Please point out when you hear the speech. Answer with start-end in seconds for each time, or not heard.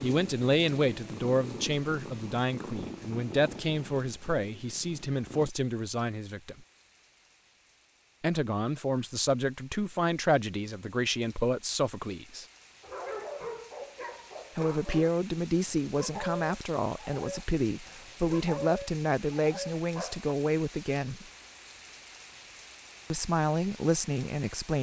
0.0-6.7, 8.2-12.4, 14.6-21.2, 23.1-24.7.